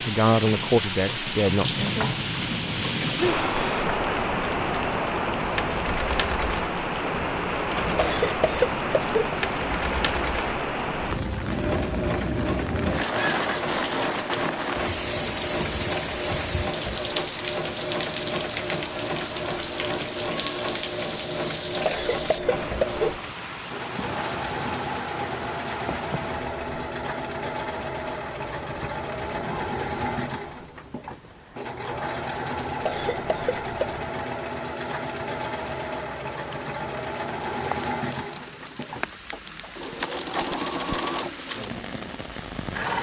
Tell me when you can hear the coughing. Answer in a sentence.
You can hear the coughing from 8.0 to 9.2 s, from 21.9 to 23.1 s and from 32.9 to 34.0 s.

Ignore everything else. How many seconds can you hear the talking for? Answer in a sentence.
The talking can be heard for 2 seconds in total.